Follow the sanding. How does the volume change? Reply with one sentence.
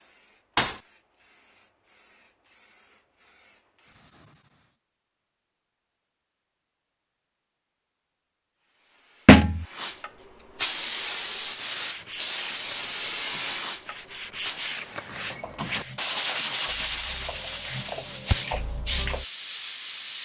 The loudness of the sanding goes up, then down.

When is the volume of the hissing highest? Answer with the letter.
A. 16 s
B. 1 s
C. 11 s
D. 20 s
C.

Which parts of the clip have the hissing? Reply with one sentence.
You can hear the hissing from 0.0 to 4.8 s and from 8.6 to 20.2 s.